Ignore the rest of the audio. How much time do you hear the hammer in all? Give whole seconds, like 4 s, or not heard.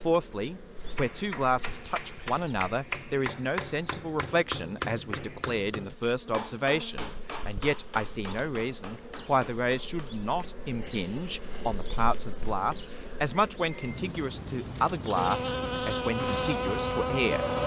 10 s.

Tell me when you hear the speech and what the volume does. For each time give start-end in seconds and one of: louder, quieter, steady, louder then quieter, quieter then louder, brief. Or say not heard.
0.0-17.4 steady.